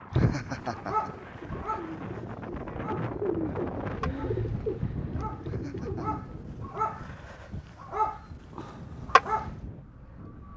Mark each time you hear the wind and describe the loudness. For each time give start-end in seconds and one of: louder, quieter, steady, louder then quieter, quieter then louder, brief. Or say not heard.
0.0-10.5 louder then quieter.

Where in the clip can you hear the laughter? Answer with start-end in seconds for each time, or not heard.
0.1-1.8, 5.4-6.2.